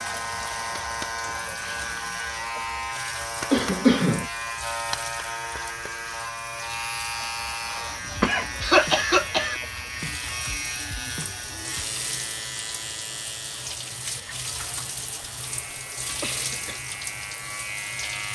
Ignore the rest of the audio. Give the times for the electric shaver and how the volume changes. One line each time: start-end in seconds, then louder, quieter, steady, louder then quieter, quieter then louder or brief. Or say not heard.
0.0-18.3 quieter.